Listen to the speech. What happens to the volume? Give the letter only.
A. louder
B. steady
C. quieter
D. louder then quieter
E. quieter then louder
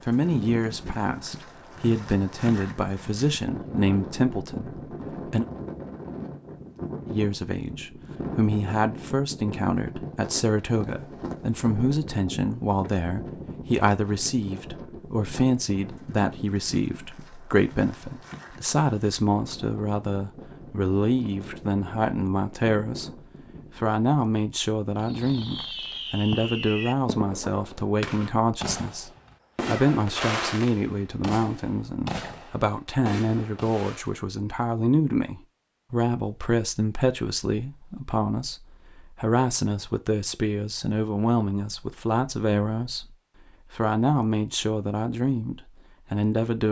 B.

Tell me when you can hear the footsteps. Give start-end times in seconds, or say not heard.
not heard.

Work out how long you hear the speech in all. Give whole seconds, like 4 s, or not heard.
45 s.